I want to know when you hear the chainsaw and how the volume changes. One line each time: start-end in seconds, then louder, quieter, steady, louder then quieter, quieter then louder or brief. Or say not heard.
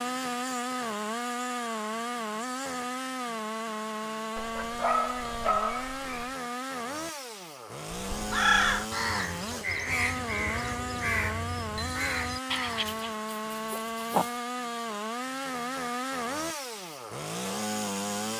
0.0-18.3 steady.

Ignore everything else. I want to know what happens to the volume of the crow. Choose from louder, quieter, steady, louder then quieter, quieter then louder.
quieter.